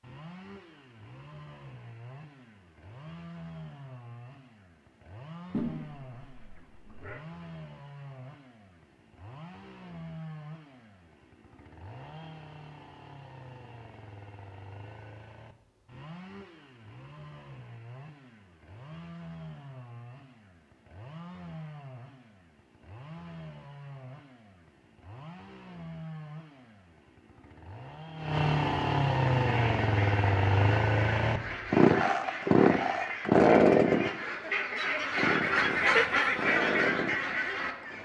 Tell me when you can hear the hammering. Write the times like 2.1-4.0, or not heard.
not heard.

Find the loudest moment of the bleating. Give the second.
6 s.